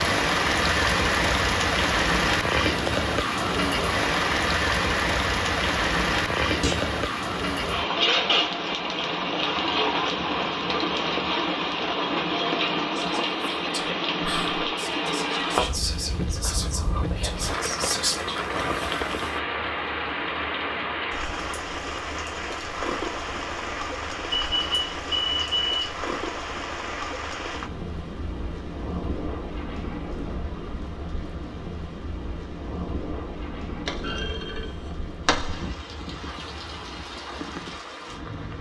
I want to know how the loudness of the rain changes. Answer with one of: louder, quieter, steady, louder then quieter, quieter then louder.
quieter.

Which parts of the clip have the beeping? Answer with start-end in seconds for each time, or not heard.
24.3-25.9.